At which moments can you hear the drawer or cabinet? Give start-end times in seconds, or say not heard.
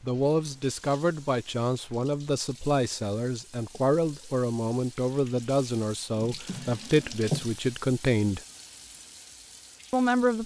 6.2-7.5.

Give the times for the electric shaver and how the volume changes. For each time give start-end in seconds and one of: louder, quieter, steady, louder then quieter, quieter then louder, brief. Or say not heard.
not heard.